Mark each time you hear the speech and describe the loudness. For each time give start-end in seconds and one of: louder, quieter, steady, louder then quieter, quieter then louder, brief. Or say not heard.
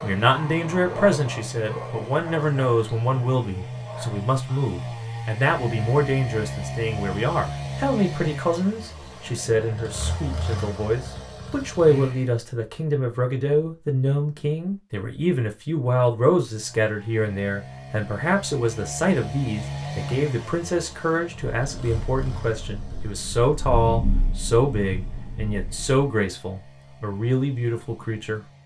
0.0-28.4 steady.